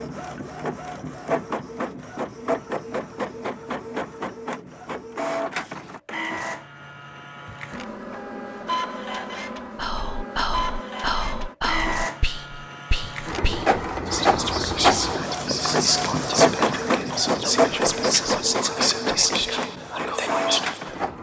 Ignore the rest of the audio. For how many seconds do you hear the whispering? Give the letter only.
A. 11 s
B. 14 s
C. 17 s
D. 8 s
A.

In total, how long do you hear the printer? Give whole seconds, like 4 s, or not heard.
21 s.